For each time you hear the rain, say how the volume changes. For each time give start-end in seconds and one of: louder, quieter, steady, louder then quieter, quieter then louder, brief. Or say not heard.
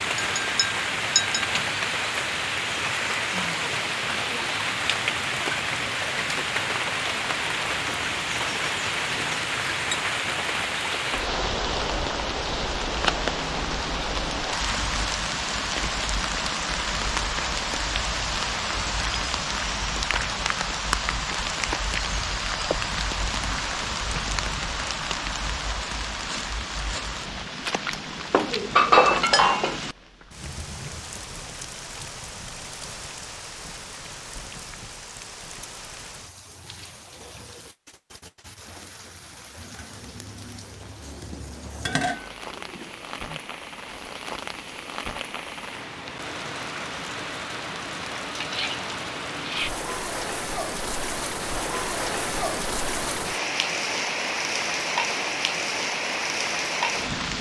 0.0-57.3 quieter then louder.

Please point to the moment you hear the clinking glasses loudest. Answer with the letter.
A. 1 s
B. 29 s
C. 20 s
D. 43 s
B.